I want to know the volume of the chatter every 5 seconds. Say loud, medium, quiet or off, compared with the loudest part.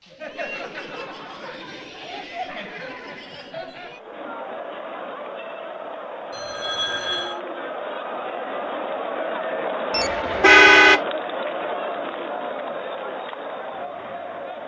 medium, loud, loud.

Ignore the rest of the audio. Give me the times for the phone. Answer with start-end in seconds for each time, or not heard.
6.3-7.4.